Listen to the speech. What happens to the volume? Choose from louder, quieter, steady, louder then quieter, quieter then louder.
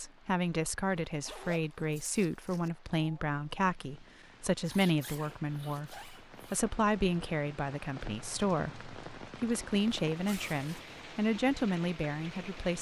steady.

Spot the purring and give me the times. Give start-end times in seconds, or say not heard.
not heard.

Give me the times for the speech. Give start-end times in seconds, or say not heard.
0.0-12.7.